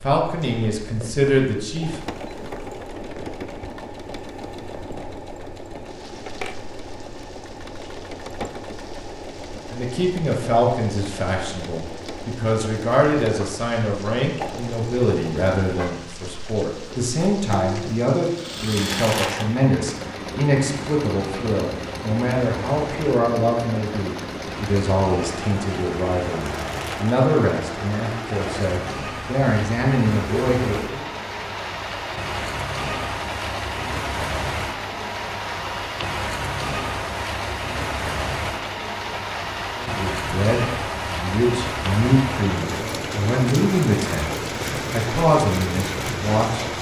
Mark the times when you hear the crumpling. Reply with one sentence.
The crumpling can be heard from 18.7 to 19.7 s and from 26.4 to 27.2 s.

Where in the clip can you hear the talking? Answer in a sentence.
The talking can be heard from 0.0 to 2.0 s, from 9.7 to 31.1 s and from 39.8 to 46.6 s.